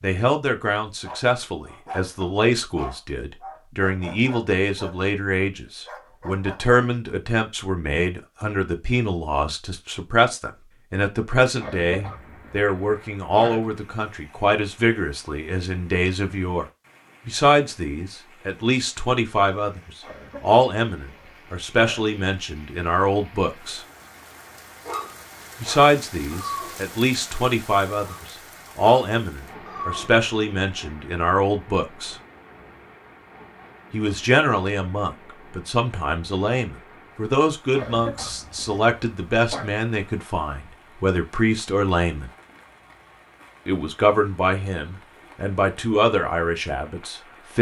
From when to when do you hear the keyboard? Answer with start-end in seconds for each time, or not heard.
not heard.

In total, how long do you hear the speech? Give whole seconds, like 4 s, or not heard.
42 s.